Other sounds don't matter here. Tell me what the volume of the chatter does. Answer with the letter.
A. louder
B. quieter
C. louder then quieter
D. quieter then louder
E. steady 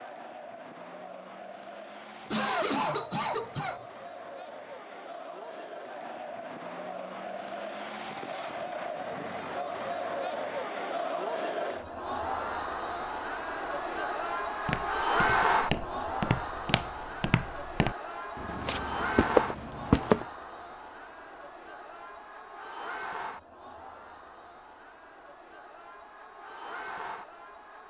C.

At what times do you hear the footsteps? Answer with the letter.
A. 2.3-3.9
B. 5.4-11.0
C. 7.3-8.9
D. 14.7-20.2
D.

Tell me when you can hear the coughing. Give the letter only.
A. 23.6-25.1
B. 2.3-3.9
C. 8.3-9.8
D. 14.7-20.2
B.